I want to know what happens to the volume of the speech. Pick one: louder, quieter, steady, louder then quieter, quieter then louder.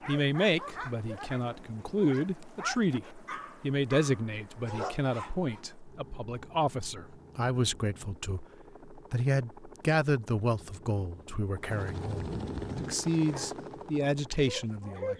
steady.